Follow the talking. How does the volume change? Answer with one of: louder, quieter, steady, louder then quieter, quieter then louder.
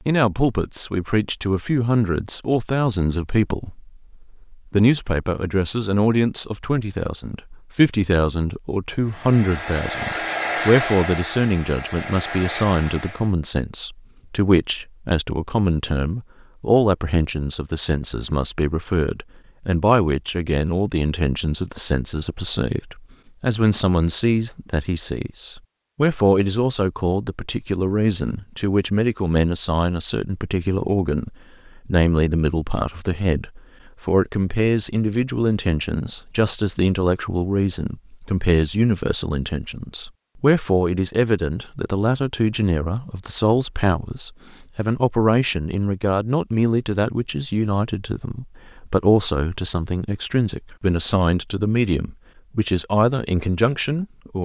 steady.